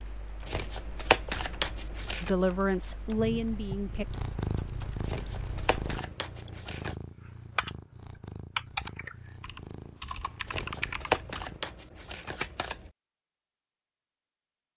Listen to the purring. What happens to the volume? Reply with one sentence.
The volume of the purring goes down.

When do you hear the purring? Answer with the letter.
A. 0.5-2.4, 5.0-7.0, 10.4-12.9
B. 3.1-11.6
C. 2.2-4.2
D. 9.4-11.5
B.